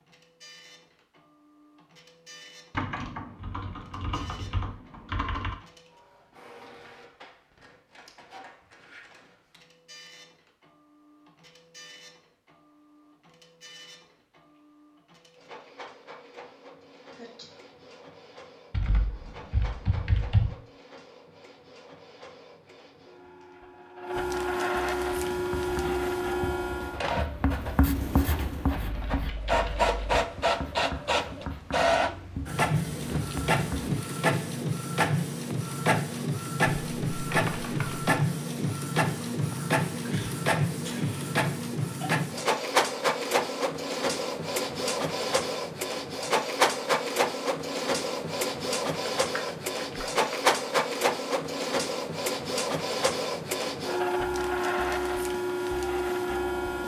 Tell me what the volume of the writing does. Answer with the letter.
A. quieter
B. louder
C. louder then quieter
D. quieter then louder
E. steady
C.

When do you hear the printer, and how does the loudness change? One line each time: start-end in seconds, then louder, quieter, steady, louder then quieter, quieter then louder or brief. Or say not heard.
0.0-56.8 louder.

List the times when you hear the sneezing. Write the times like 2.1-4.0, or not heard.
17.1-17.6, 40.1-41.1.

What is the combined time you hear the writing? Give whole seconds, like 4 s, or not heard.
9 s.